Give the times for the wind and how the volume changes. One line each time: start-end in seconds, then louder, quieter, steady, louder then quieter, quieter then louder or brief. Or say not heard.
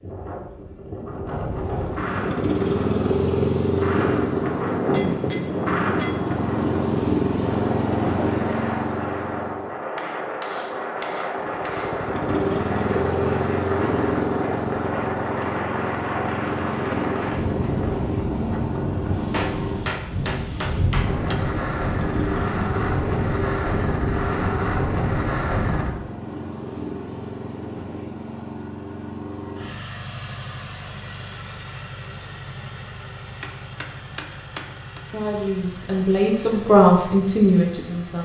0.0-25.9 steady.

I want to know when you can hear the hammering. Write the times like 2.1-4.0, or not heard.
4.7-6.3, 9.9-12.2, 19.3-21.4, 33.4-35.0.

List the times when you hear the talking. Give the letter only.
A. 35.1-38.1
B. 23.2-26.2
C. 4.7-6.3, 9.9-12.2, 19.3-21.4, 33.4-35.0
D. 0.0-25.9
A.